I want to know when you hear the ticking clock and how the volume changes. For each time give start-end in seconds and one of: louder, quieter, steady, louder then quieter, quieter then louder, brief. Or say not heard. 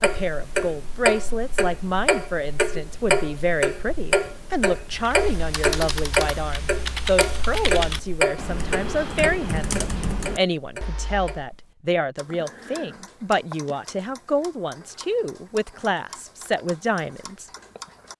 0.0-18.1 quieter.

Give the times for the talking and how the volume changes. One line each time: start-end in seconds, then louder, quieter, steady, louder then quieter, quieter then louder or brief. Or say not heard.
0.0-17.4 steady.